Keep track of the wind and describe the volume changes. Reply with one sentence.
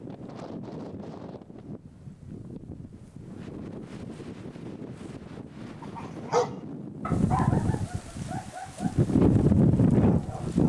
The loudness of the wind goes up.